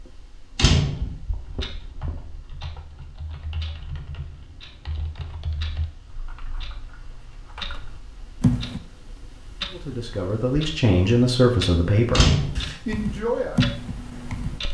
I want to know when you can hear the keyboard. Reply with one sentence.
The keyboard can be heard from 1.4 to 8.8 s and from 12.8 to 14.7 s.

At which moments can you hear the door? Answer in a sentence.
You can hear the door from 0.6 to 1.1 s and from 12.2 to 12.8 s.